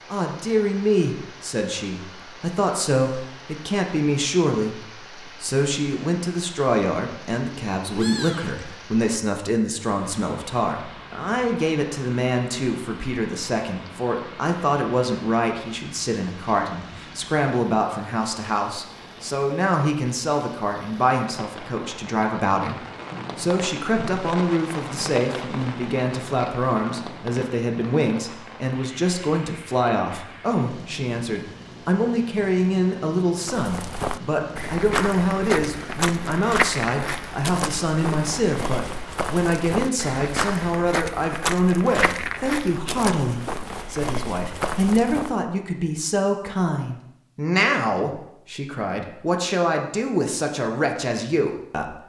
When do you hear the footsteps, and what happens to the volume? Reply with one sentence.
You can hear the footsteps from 33.5 to 45.4 s, at a steady volume.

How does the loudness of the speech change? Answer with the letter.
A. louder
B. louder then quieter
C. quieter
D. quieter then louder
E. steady
E.